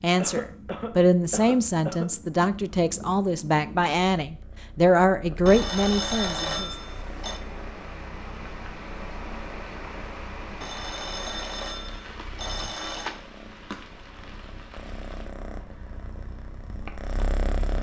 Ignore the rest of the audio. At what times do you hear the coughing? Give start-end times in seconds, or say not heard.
0.1-2.1.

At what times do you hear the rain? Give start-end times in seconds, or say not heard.
6.5-17.7.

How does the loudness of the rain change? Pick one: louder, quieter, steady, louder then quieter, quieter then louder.
quieter.